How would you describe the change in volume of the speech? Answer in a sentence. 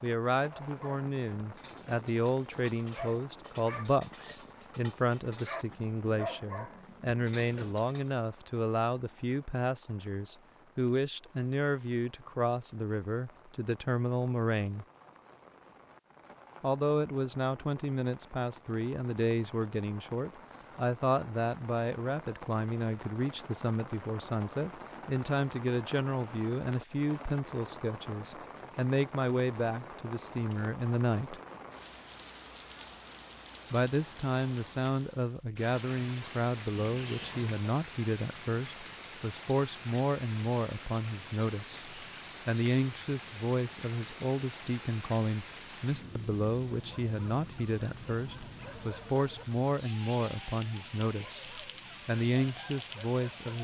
The volume of the speech stays about the same.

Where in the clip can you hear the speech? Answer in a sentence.
You can hear the speech from 0.0 to 14.8 s, from 16.6 to 31.4 s and from 33.7 to 53.6 s.